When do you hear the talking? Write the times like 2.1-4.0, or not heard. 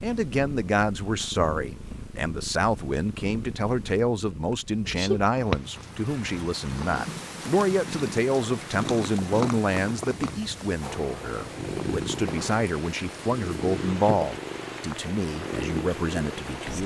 0.0-16.8.